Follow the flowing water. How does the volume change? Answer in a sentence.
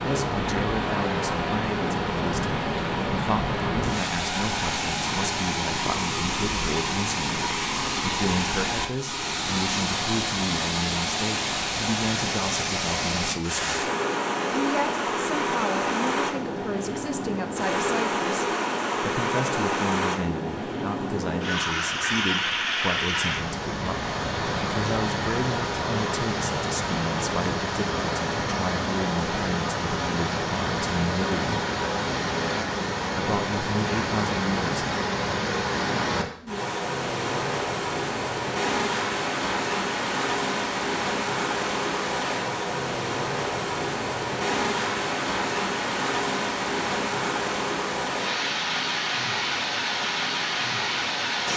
The volume of the flowing water stays about the same.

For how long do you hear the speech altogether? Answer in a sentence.
The speech can be heard for 33 seconds in total.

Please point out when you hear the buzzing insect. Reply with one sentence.
The buzzing insect can't be heard in this clip.